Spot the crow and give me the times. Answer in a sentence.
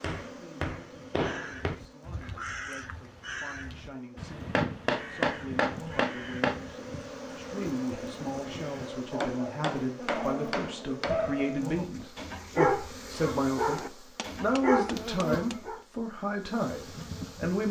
You can hear the crow from 1.1 to 8.9 s.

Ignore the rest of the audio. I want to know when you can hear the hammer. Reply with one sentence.
You can hear the hammer from 0.0 to 1.8 s, from 4.5 to 6.7 s, from 9.2 to 11.3 s and from 13.8 to 15.6 s.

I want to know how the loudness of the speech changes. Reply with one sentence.
The volume of the speech goes up.